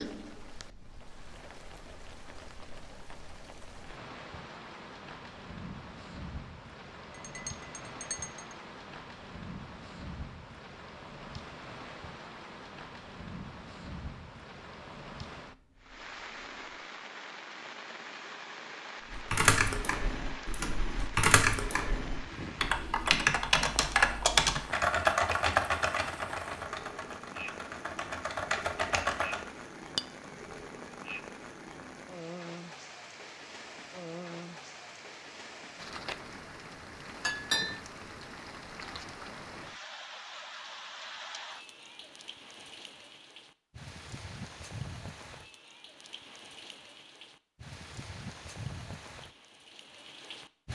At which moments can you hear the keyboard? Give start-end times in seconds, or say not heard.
19.1-29.5.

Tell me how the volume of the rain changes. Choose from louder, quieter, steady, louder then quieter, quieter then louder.
steady.